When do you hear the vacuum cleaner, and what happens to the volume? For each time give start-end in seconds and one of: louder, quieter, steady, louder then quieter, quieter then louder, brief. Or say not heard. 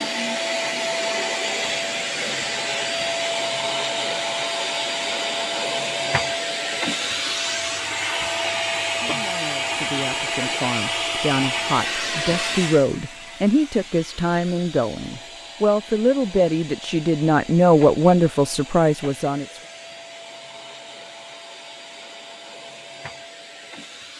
0.0-24.1 quieter.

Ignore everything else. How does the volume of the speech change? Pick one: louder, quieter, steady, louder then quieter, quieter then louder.
louder.